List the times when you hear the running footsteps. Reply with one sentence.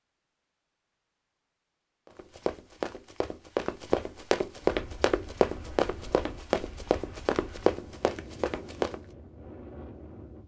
You can hear the running footsteps from 2.0 to 8.9 s.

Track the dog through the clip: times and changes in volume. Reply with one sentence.
The dog can't be heard in this clip.